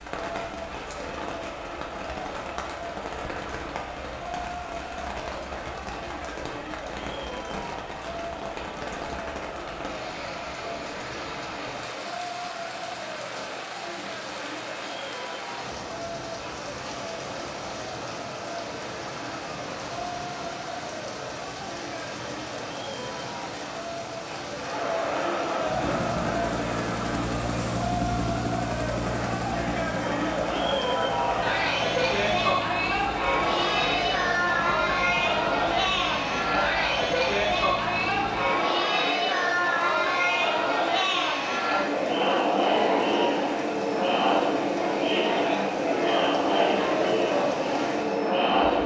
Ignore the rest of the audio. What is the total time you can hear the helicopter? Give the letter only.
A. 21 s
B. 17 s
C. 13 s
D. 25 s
C.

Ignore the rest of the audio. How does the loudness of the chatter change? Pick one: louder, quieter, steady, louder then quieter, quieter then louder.
louder.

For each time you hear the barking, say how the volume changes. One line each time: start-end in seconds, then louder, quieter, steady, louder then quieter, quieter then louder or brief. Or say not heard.
not heard.